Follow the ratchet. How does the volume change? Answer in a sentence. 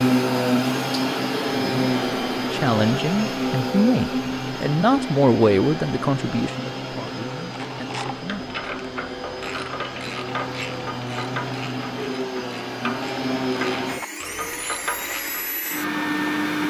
The volume of the ratchet stays about the same.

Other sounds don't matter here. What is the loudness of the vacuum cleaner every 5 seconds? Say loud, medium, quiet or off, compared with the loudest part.
loud, medium, medium, loud.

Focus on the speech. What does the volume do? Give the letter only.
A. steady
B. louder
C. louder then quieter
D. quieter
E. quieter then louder
D.